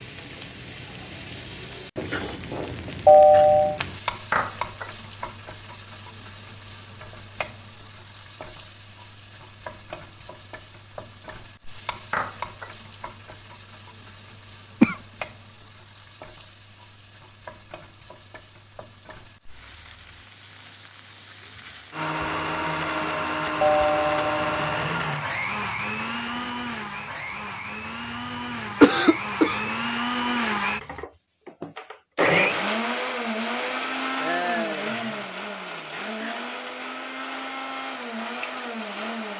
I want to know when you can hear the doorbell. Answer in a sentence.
The doorbell can be heard from 3.0 to 3.8 s and from 23.6 to 24.9 s.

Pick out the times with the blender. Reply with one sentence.
You can hear the blender from 21.9 to 39.3 s.